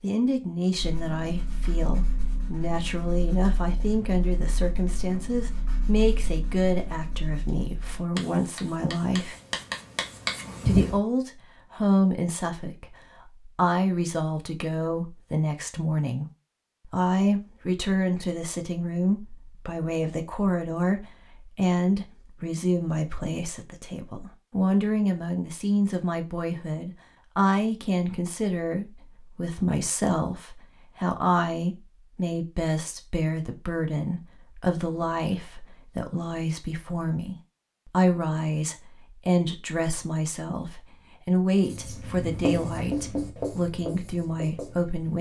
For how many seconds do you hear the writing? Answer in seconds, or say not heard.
14 s.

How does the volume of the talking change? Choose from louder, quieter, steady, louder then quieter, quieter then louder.
steady.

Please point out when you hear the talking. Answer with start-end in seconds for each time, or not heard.
0.0-9.3, 10.7-16.2, 16.9-45.1.